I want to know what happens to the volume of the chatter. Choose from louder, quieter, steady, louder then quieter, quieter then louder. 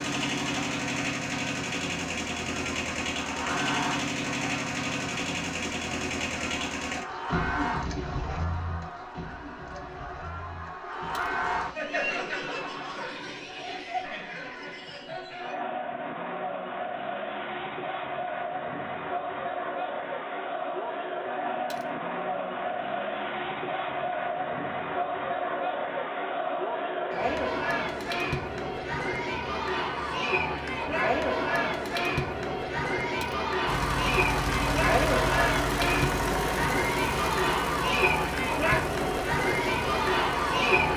louder.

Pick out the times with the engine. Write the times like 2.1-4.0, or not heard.
0.0-11.8, 33.6-40.9.